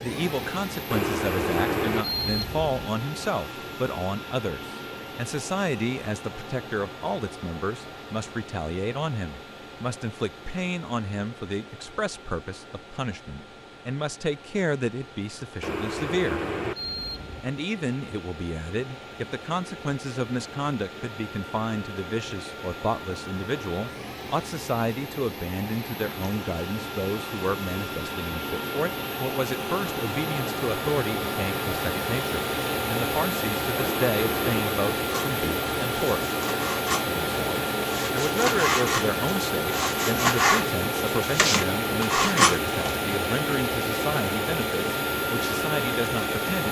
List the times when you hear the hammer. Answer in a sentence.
The hammer can't be heard in this clip.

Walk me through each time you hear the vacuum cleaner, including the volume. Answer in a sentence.
You can hear the vacuum cleaner from 0.0 to 46.6 s, getting quieter then louder.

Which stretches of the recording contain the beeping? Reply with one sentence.
You can hear the beeping from 0.9 to 2.9 s, from 15.6 to 17.5 s and from 33.8 to 34.8 s.